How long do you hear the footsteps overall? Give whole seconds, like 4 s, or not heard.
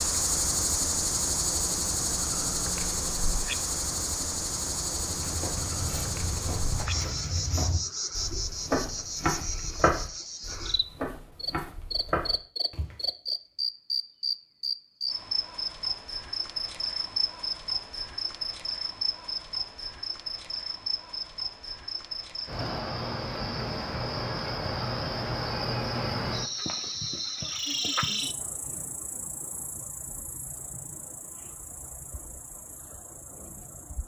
8 s.